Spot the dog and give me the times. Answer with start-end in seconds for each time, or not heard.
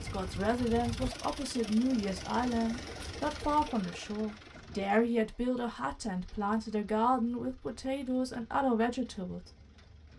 not heard.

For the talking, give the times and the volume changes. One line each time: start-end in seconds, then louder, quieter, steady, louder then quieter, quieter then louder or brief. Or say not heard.
0.0-9.4 steady.